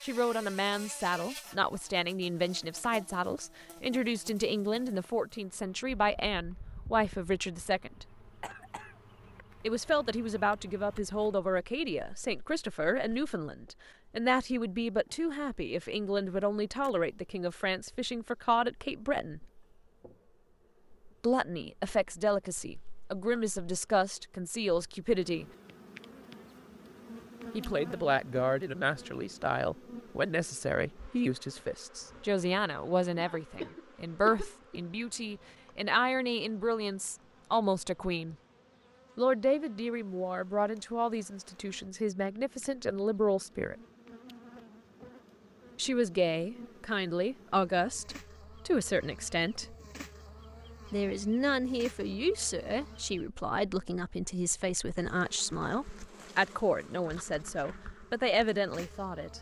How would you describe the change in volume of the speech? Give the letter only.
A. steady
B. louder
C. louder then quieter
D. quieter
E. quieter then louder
A.